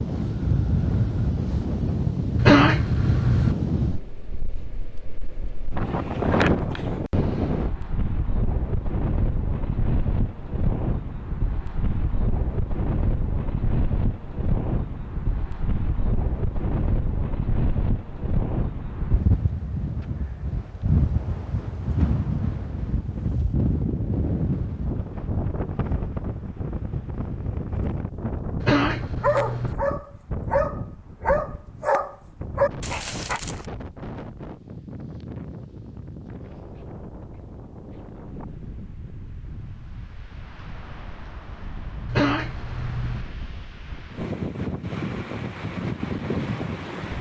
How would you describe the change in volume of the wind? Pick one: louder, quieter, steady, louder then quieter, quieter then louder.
quieter.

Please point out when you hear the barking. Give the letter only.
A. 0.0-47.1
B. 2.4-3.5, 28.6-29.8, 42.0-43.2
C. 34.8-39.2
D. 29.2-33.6
D.